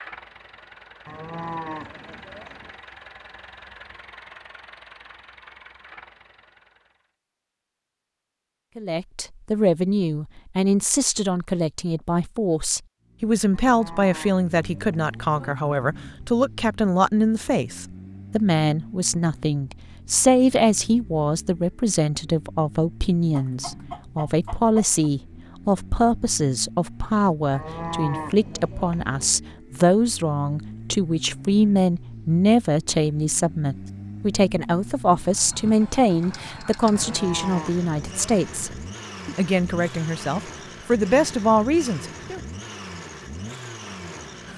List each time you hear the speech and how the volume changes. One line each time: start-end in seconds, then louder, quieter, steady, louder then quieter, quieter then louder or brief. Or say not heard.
8.8-42.4 steady.